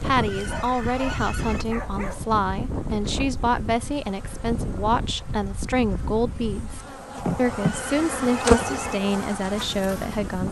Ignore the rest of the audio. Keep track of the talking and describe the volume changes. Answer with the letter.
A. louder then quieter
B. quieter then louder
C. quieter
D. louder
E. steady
E.